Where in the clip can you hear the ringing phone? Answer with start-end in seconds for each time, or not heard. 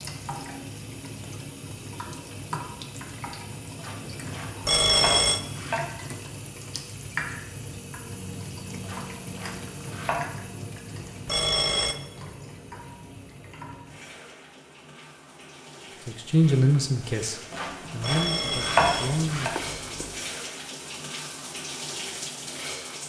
4.7-5.4, 11.2-11.9, 18.0-20.2.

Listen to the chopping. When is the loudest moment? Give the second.
19 s.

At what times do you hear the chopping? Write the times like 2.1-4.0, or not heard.
3.8-5.8, 8.8-10.2, 17.5-19.5.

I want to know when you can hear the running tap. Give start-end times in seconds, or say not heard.
0.0-23.0.